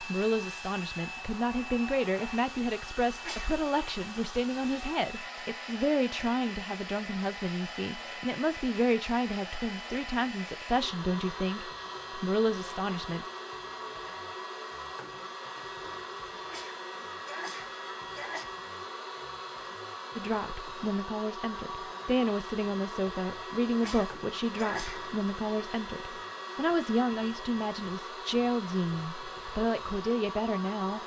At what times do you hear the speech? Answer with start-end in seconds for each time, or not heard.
0.0-13.2, 20.1-31.0.